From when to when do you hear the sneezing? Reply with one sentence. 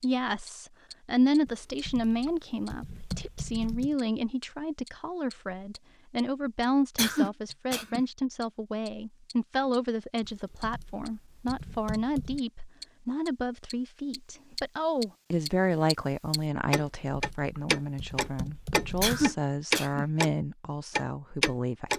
The sneezing can be heard from 7.0 to 8.0 s and from 19.0 to 20.1 s.